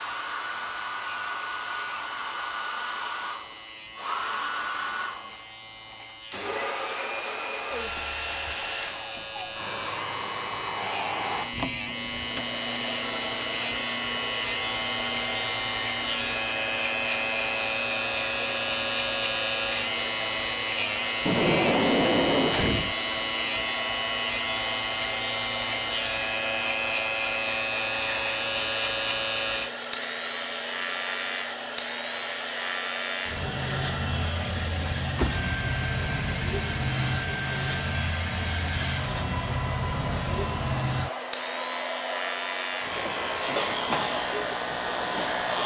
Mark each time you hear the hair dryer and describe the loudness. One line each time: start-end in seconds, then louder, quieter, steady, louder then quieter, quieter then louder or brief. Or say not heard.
0.0-45.6 steady.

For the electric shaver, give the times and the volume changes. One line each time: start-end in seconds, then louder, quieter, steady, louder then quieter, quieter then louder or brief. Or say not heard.
0.0-45.6 louder.